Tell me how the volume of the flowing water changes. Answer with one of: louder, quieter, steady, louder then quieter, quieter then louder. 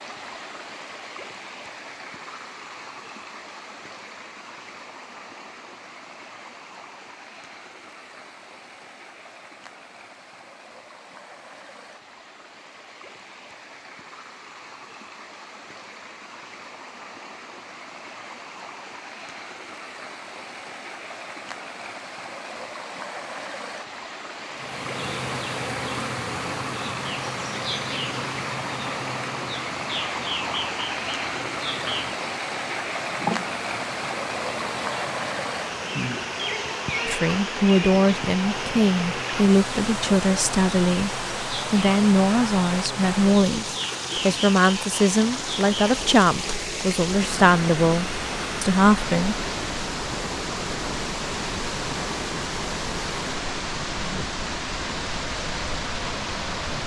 louder.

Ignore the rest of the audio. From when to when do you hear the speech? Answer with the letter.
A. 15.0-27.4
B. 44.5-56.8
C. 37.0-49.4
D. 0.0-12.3
C.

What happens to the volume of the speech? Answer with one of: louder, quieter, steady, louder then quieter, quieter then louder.
steady.